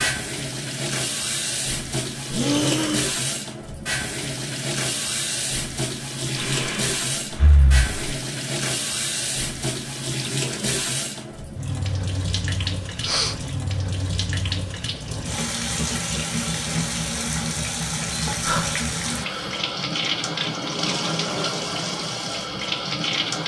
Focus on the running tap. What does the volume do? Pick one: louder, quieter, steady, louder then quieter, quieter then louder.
steady.